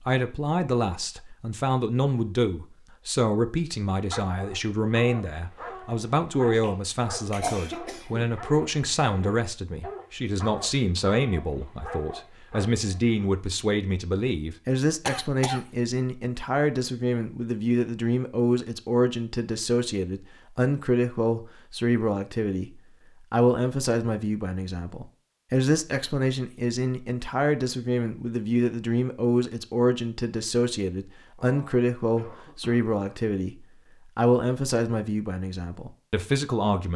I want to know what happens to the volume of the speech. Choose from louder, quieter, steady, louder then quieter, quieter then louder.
steady.